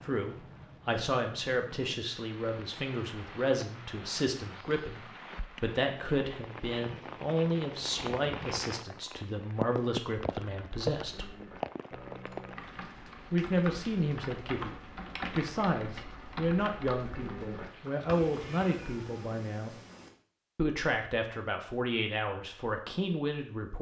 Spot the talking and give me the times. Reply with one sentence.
The talking can be heard from 0.0 to 11.3 s, from 13.3 to 14.8 s, from 15.3 to 19.8 s and from 20.6 to 23.7 s.